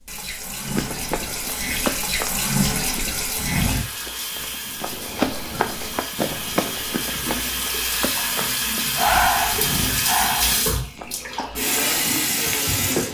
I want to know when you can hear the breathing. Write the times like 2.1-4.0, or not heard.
8.9-10.6.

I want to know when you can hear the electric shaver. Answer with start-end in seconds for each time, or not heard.
not heard.